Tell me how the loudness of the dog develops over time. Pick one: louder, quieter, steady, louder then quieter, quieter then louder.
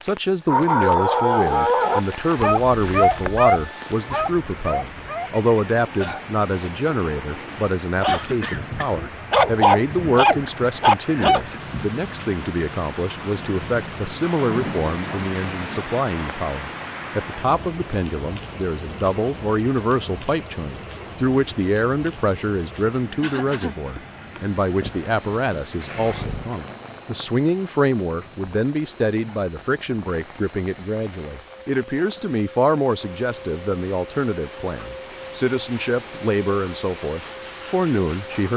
quieter then louder.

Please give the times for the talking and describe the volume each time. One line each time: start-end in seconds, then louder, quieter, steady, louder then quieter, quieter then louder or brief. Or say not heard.
0.0-38.5 steady.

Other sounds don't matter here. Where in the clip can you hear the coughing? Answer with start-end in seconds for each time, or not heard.
8.1-8.9, 23.2-23.8.